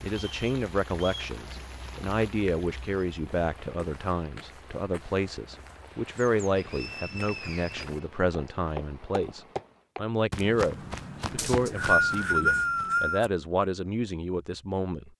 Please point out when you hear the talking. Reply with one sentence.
You can hear the talking from 0.0 to 15.1 s.